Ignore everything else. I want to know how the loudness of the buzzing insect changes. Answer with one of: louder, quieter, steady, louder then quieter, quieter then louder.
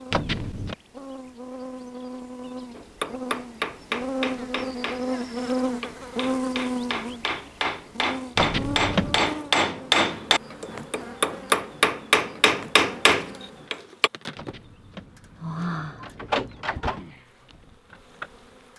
louder then quieter.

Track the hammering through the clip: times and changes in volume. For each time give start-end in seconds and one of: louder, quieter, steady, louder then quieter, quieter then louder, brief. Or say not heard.
2.8-14.1 louder.